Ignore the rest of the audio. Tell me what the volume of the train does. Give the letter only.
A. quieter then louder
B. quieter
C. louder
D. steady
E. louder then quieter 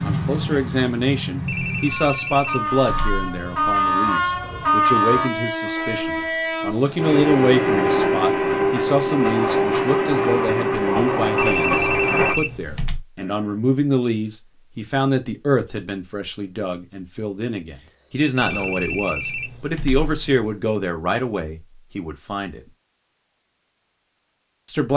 C.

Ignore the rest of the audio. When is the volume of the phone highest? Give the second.
12 s.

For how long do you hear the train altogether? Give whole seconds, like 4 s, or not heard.
12 s.